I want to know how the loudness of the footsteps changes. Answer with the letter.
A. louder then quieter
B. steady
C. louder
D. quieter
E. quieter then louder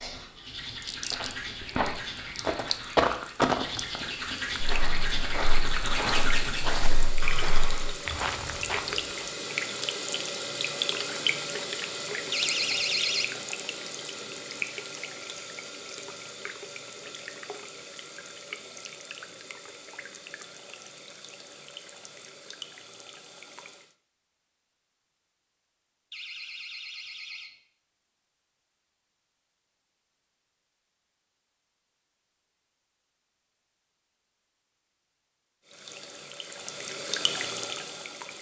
A.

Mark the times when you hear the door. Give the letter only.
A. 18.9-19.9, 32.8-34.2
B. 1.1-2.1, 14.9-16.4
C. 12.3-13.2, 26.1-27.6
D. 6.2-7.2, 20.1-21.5
C.